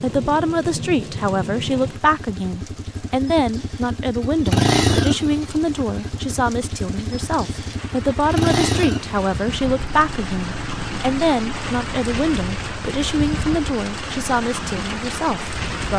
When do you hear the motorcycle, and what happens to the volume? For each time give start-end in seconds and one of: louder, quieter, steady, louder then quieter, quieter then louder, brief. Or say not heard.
0.0-15.9 louder then quieter.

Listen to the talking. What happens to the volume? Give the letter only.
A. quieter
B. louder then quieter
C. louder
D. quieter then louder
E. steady
E.